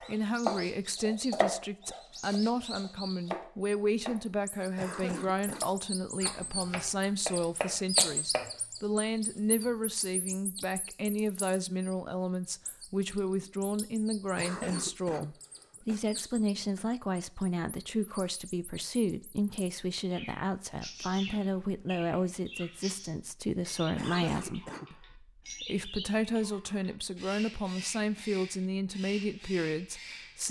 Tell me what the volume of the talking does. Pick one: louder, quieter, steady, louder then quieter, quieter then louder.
steady.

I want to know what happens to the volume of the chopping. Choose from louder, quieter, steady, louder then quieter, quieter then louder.
quieter then louder.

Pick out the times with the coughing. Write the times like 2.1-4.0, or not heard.
4.8-5.7, 14.3-16.0, 23.9-24.9.